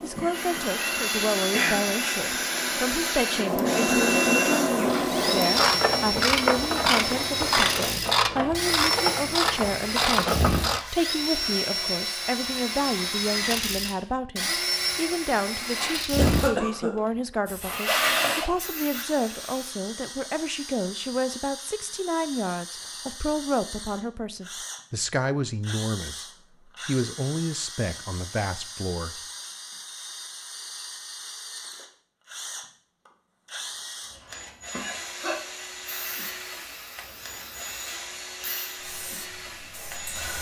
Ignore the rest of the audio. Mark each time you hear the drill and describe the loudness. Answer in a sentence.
You can hear the drill from 0.1 to 40.3 s, getting quieter.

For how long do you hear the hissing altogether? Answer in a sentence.
The hissing can be heard for 15 seconds in total.